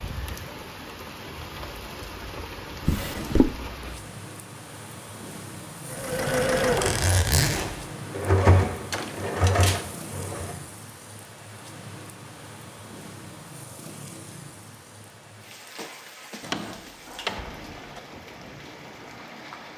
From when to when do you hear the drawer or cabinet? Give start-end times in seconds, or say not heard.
2.9-3.5, 8.9-9.9, 16.4-18.0.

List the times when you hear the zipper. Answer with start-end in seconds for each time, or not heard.
6.5-7.7.